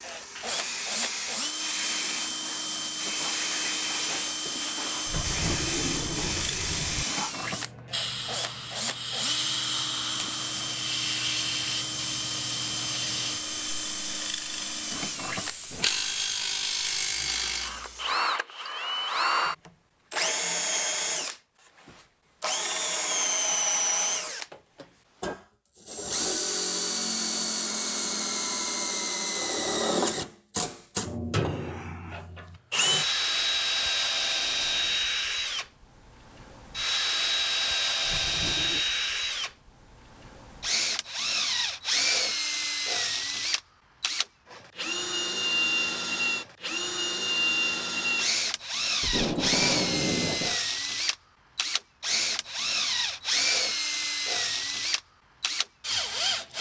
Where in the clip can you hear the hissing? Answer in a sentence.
You can hear the hissing from 0.0 to 18.2 s.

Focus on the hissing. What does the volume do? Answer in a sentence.
The loudness of the hissing goes down.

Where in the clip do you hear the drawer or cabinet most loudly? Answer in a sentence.
The loudest moment of the drawer or cabinet is at 6 seconds.